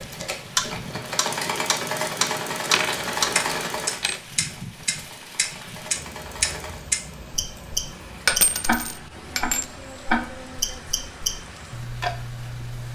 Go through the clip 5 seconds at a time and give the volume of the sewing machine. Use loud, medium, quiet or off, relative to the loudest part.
loud, medium, off.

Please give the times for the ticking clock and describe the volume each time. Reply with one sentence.
You can hear the ticking clock from 0.0 to 12.8 s, at a steady volume.